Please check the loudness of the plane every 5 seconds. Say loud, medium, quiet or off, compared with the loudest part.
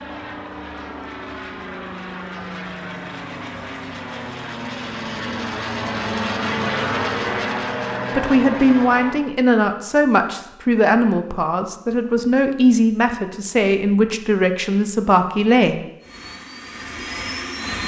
medium, loud, off, medium.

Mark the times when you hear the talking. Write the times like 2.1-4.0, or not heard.
8.2-15.8.